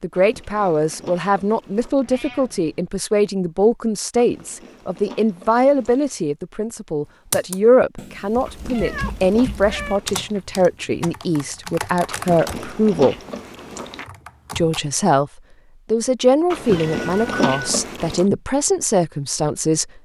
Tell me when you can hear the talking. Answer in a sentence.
The talking can be heard from 0.0 to 13.2 s, from 14.6 to 15.3 s and from 15.9 to 20.0 s.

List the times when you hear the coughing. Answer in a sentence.
The coughing can't be heard in this clip.